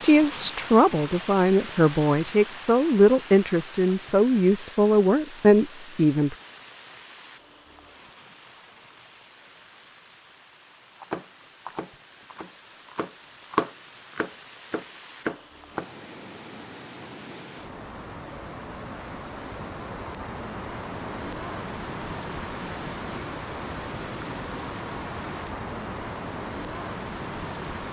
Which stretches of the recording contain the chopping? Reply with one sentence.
The chopping can be heard from 11.0 to 15.9 s.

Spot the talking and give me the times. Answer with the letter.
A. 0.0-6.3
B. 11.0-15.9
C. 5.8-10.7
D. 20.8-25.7
A.